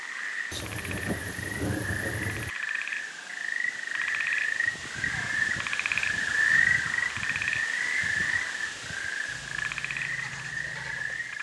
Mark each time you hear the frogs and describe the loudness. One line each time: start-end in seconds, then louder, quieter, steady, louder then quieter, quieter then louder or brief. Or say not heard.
0.0-11.3 louder then quieter.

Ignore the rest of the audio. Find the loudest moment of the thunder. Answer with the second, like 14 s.
2 s.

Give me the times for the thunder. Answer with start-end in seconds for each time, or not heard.
0.5-2.5.